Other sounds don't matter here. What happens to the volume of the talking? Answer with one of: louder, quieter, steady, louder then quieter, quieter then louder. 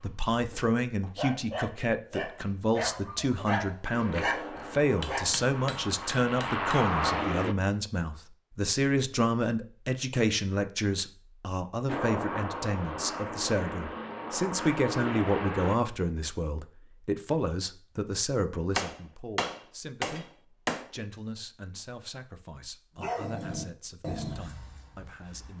quieter.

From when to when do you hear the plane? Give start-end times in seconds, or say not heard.
3.9-7.5, 11.8-15.8.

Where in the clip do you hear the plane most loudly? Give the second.
7 s.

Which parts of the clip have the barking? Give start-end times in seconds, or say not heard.
0.0-5.3, 23.0-25.5.